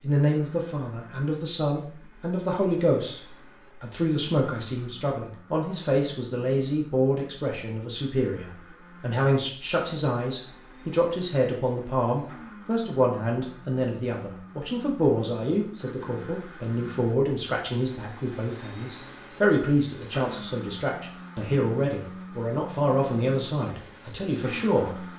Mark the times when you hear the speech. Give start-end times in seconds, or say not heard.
0.0-3.2, 3.8-25.1.